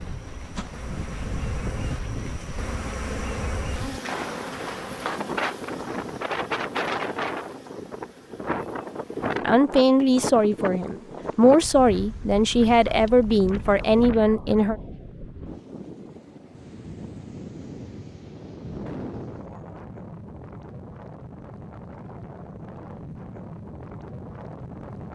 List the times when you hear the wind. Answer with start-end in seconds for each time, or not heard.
0.0-25.1.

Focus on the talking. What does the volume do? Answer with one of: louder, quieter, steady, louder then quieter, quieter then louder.
steady.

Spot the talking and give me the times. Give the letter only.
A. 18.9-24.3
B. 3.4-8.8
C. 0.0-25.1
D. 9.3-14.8
D.